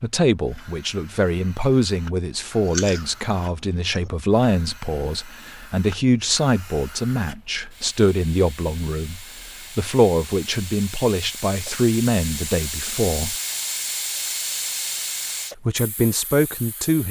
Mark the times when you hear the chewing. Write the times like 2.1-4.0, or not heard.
2.4-4.1.